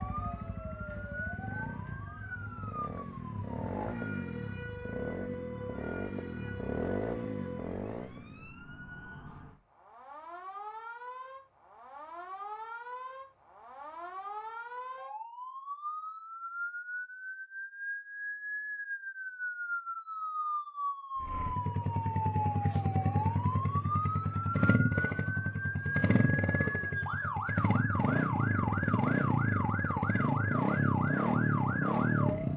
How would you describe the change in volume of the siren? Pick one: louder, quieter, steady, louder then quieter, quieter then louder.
louder.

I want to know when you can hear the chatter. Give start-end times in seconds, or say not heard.
not heard.